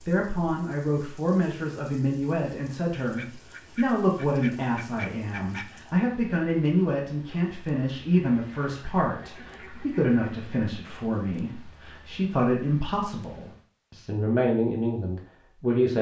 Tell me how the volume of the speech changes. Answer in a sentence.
The loudness of the speech stays about the same.